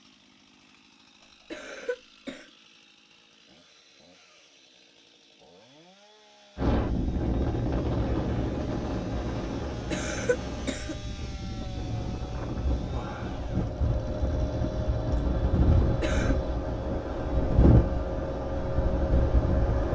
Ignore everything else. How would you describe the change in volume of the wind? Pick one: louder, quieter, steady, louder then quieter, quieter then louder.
quieter then louder.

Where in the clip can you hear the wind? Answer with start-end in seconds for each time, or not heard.
6.5-19.8.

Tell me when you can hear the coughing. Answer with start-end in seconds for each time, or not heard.
1.5-2.5, 9.9-10.9, 15.9-16.4.